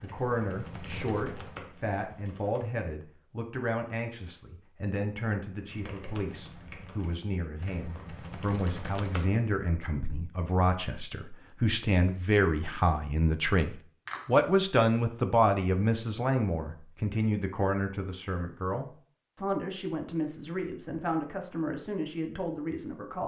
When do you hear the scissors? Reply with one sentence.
The scissors can't be heard in this clip.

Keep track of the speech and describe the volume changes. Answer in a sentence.
The volume of the speech goes up, then down.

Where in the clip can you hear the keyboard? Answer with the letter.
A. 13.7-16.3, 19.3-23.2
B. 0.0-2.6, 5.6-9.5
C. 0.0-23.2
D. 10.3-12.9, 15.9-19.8
B.